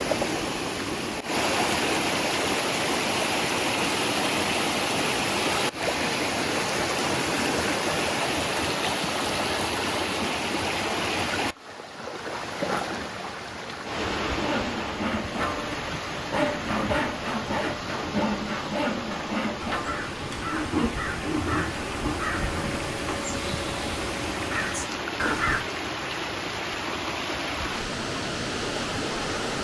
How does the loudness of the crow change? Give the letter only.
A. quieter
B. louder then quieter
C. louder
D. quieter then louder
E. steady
E.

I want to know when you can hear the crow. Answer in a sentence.
You can hear the crow from 19.6 to 25.6 s.